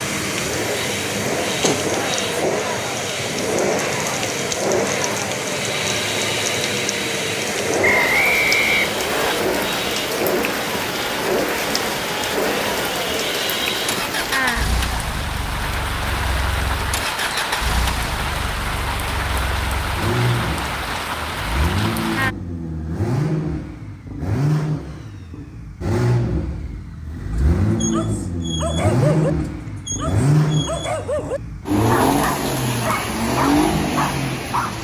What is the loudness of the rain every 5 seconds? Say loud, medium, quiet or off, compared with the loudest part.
loud, loud, loud, loud, loud, off, off.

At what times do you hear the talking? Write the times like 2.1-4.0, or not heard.
not heard.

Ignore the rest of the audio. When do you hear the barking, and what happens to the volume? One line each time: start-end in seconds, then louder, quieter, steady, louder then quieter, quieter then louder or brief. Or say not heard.
27.3-34.7 steady.